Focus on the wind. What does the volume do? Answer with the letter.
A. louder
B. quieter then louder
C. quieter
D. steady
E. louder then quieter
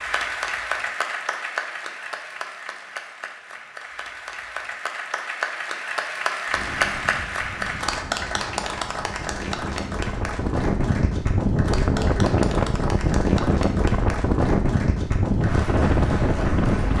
A.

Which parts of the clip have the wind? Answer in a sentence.
You can hear the wind from 6.5 to 16.9 s.